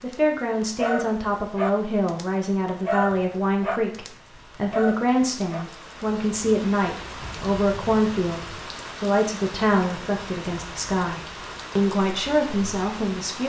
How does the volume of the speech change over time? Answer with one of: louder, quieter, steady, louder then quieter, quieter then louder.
steady.